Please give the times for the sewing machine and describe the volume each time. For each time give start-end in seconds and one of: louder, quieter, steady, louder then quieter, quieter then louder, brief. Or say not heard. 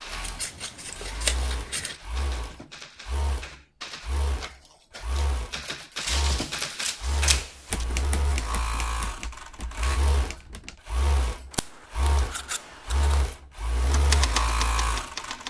0.0-15.4 louder.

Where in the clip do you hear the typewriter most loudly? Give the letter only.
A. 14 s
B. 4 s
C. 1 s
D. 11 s
A.